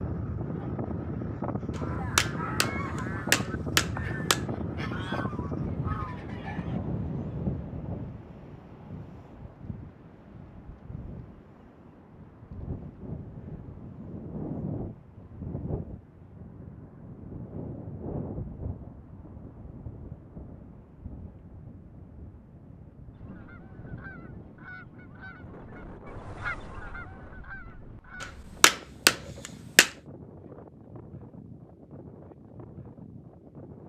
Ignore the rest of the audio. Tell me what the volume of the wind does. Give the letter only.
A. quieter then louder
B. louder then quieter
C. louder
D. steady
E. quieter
E.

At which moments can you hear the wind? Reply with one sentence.
The wind can be heard from 0.0 to 33.8 s.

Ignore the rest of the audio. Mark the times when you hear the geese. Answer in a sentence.
The geese can be heard from 1.7 to 6.8 s and from 23.1 to 28.4 s.